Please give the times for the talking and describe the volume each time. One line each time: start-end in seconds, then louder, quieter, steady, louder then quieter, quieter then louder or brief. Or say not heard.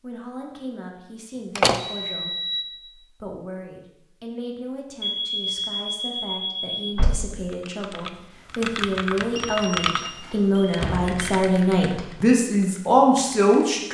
0.0-13.9 louder.